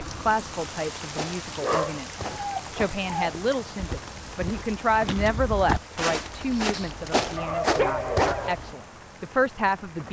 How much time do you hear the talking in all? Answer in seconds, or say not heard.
10 s.